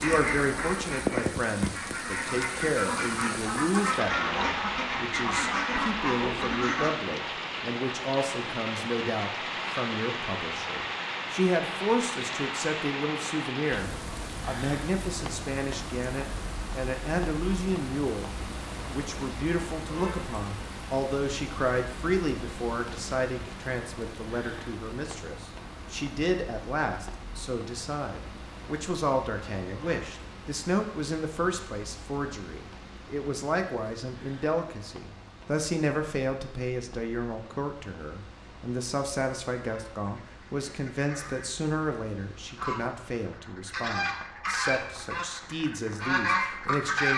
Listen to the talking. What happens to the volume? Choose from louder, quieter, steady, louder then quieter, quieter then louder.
steady.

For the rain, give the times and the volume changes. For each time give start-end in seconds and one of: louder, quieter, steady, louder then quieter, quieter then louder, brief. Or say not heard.
0.0-46.9 quieter.